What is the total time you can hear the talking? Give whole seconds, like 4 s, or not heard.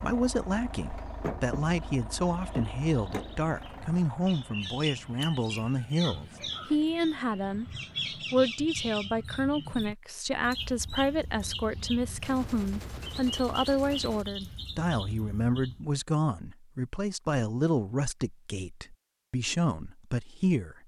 20 s.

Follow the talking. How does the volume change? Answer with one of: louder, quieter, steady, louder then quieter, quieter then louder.
steady.